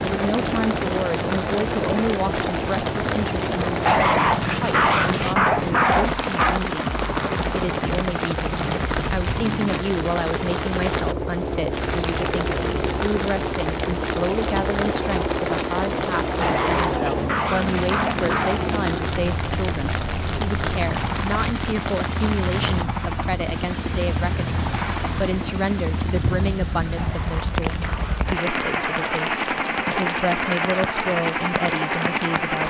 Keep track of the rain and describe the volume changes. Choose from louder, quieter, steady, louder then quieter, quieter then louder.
steady.